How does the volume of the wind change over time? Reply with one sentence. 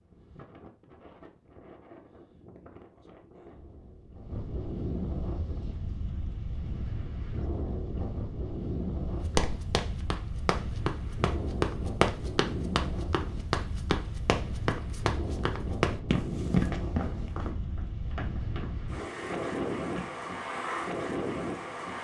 The loudness of the wind goes up.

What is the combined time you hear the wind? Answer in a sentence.
You can hear the wind for 22 seconds altogether.